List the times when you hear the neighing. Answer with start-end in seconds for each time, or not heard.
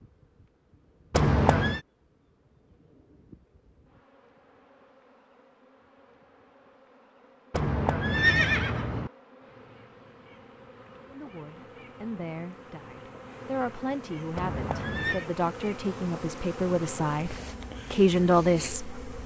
1.1-1.8, 7.5-9.1, 14.3-15.2.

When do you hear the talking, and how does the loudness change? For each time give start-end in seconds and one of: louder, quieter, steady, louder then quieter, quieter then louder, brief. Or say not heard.
11.1-19.2 louder.